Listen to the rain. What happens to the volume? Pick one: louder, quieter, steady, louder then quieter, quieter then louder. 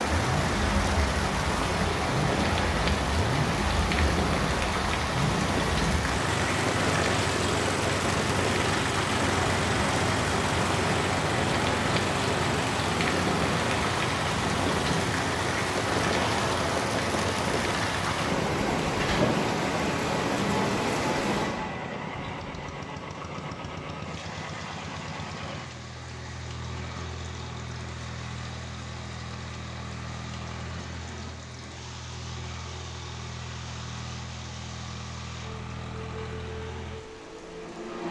quieter.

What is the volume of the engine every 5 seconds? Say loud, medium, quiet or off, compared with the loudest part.
loud, loud, loud, loud, medium, medium, medium, medium.